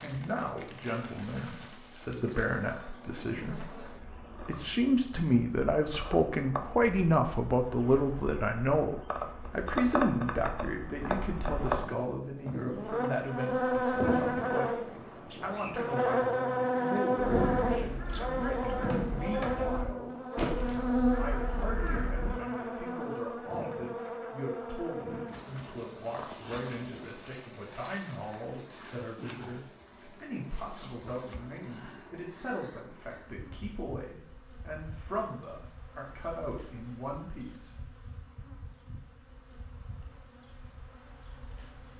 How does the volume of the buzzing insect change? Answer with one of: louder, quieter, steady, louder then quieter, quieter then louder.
louder then quieter.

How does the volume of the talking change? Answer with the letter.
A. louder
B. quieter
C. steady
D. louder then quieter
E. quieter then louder
B.